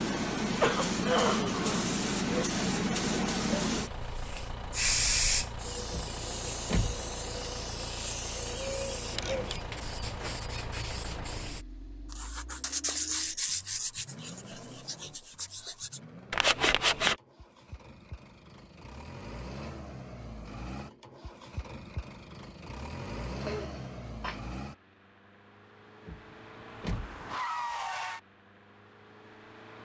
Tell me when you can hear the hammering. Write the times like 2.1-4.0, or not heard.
not heard.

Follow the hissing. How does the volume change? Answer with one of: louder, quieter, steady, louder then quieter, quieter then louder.
quieter.